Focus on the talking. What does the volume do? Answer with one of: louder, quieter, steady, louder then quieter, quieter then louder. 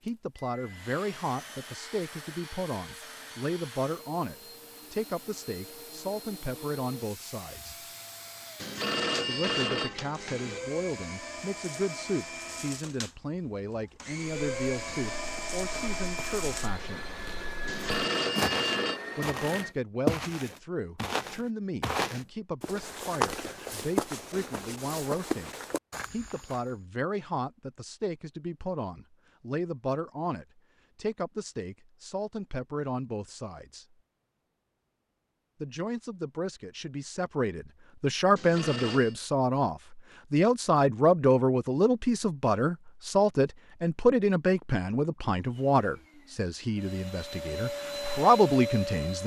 louder.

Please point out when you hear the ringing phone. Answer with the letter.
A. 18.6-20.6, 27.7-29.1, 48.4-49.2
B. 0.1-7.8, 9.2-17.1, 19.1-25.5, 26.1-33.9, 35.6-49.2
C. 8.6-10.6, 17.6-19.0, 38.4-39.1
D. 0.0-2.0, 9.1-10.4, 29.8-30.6
C.